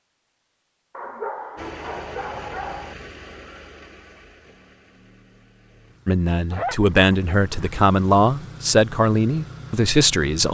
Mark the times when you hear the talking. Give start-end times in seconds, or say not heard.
6.0-10.4.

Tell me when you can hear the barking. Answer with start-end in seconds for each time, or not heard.
0.9-3.0, 6.5-7.8.